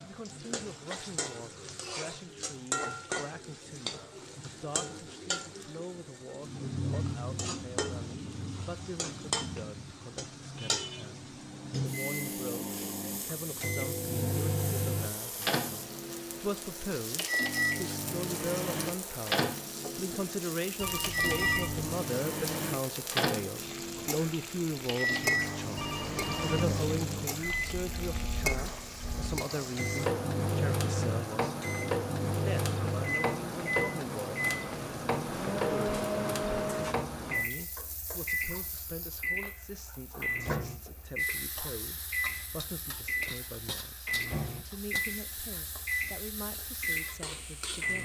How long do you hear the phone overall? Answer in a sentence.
The phone can be heard for 2 seconds in total.